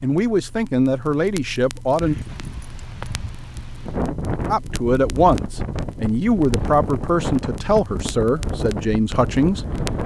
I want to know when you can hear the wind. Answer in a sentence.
The wind can be heard from 2.0 to 10.0 s.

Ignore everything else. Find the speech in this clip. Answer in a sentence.
The speech can be heard from 0.0 to 2.1 s and from 4.5 to 9.7 s.